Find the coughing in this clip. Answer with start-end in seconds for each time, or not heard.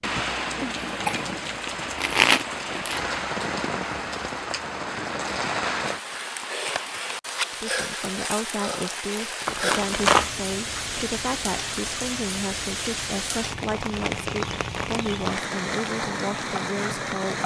0.6-1.3.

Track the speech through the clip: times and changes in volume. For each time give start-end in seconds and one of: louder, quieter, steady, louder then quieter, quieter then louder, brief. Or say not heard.
7.5-17.4 steady.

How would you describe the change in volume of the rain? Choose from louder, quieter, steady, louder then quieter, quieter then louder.
steady.